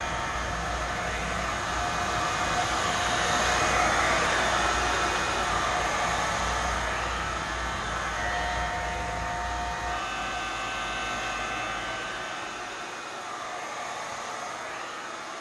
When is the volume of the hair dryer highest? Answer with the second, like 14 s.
4 s.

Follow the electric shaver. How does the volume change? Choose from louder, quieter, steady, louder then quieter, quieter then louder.
steady.